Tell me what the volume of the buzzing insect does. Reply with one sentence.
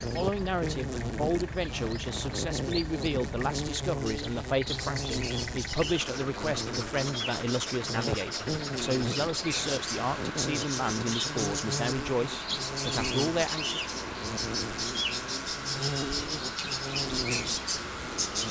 The volume of the buzzing insect stays about the same.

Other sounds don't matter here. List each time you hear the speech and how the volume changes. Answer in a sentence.
The speech can be heard from 0.0 to 13.8 s, at a steady volume.